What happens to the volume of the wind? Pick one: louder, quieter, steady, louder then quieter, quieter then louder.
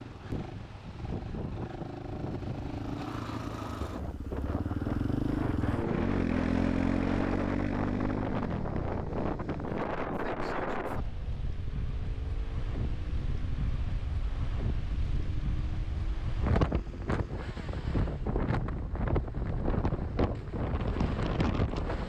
louder.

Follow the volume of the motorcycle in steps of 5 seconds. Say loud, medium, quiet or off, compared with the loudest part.
medium, loud, quiet, quiet, quiet.